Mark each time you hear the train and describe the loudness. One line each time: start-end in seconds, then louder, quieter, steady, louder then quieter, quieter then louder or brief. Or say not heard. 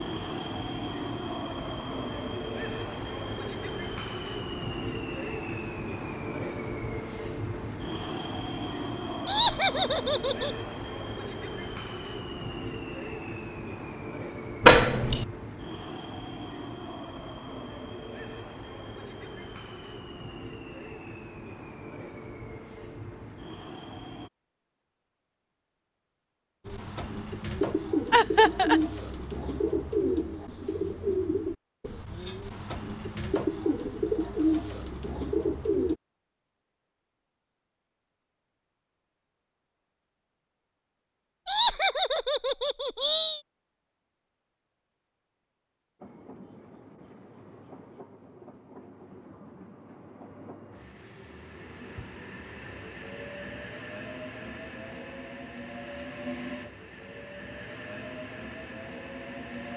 0.0-24.3 quieter
46.0-59.7 louder.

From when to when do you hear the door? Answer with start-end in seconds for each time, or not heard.
14.6-15.2.